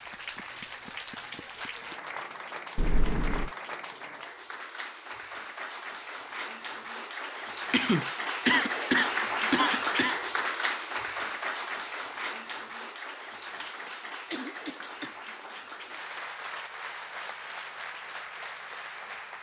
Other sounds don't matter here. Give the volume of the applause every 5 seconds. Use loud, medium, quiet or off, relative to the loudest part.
medium, loud, loud, medium.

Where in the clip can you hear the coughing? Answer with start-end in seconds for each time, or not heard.
2.8-3.5, 7.7-10.2, 14.3-15.2.